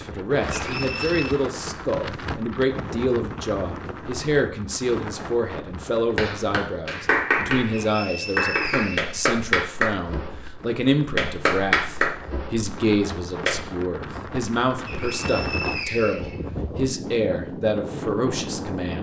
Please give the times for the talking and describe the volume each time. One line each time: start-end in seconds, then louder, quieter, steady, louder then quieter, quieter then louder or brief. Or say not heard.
0.0-18.9 steady.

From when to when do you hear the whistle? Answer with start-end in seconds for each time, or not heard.
0.6-1.4, 7.7-9.2, 14.8-16.4.